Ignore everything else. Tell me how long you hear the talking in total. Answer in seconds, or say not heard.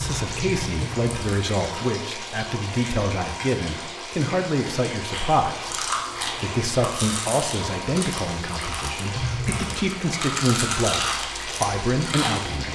13 s.